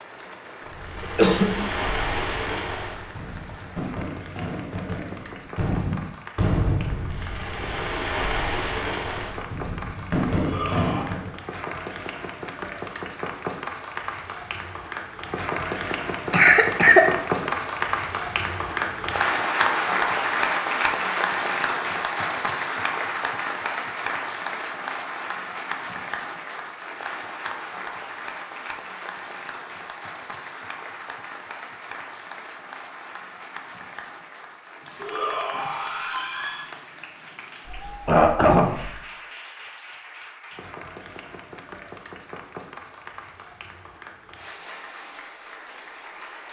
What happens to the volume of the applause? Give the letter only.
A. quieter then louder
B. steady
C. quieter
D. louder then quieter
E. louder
D.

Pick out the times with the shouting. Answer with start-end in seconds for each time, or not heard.
10.3-11.1, 35.0-36.7.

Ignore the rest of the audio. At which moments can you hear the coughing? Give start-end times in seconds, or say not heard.
1.0-1.6, 16.3-17.1, 37.6-38.9.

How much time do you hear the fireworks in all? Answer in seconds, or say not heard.
11 s.